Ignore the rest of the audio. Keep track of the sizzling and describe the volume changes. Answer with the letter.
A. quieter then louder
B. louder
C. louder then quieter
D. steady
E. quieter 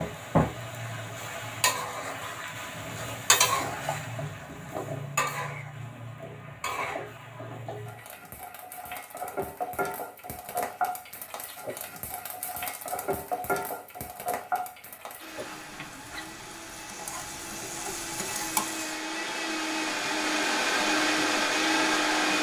E.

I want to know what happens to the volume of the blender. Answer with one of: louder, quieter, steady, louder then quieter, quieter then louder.
louder.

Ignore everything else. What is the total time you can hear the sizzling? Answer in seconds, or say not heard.
19 s.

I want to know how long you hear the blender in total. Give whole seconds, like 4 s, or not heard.
7 s.